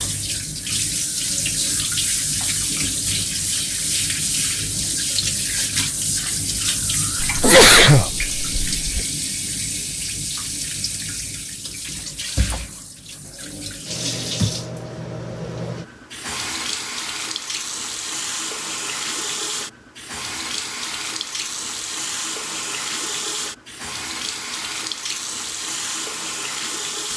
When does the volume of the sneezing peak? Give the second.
8 s.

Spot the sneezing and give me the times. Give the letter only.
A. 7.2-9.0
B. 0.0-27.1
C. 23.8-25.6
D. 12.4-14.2
A.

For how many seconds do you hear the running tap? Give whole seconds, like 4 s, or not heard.
27 s.